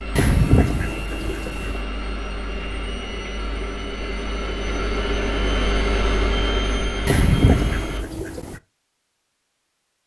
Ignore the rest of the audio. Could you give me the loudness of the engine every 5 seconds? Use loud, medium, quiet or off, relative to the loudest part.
medium, loud.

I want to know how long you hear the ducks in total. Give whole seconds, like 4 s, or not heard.
3 s.